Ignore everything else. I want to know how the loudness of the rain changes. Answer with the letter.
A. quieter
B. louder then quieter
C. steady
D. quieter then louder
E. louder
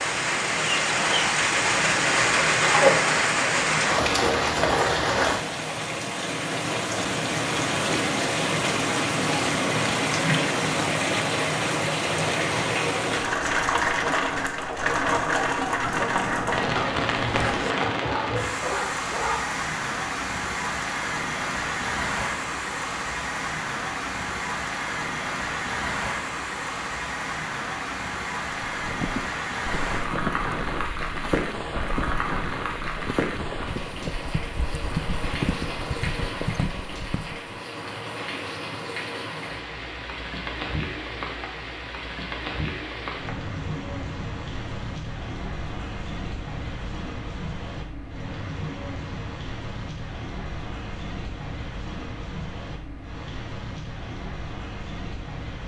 A.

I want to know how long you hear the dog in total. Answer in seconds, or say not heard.
4 s.